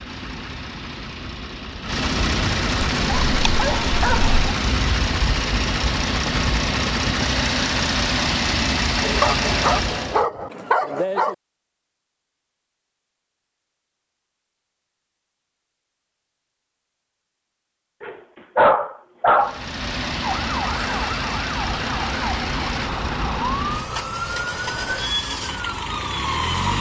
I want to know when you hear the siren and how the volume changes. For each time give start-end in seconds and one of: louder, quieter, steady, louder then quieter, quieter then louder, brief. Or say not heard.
20.2-26.7 steady.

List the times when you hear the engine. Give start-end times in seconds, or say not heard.
0.0-10.2, 19.4-26.7.